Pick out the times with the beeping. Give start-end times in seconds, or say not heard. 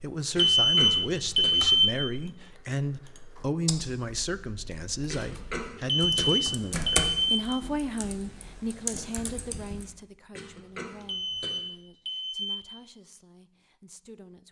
0.5-2.1, 5.8-7.5, 11.0-12.8.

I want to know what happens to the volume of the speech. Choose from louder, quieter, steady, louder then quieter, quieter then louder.
quieter.